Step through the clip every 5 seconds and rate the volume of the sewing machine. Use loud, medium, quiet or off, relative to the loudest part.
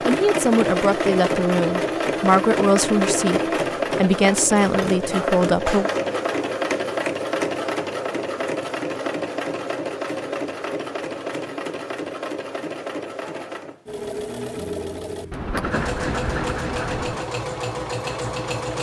loud, loud, medium, medium.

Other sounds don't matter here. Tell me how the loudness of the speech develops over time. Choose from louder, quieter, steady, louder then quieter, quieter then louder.
steady.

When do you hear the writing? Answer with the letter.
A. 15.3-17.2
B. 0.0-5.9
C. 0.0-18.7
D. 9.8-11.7
A.